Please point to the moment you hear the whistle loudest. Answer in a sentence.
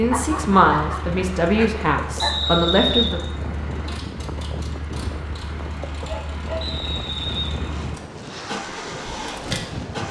The loudest moment of the whistle is at 3 seconds.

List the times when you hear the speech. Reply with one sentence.
You can hear the speech from 0.0 to 3.2 s.